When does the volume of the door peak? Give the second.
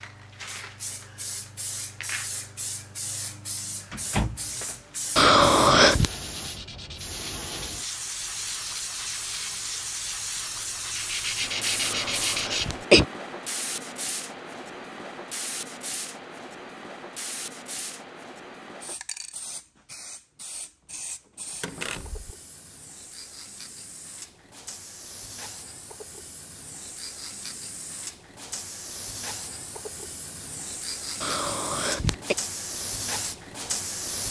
4 s.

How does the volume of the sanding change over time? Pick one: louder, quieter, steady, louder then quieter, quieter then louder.
louder.